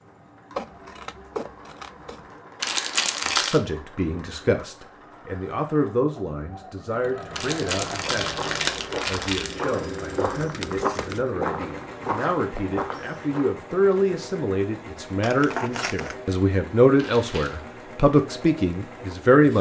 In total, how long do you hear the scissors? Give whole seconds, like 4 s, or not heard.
4 s.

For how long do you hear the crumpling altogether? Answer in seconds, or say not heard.
4 s.